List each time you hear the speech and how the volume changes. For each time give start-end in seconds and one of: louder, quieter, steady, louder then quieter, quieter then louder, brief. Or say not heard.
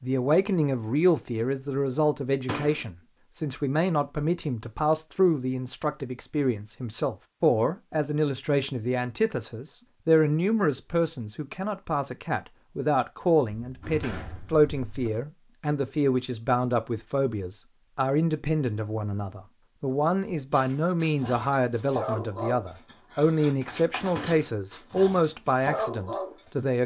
0.0-26.8 steady.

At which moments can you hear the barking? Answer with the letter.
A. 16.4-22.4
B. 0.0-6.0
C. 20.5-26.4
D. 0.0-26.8
C.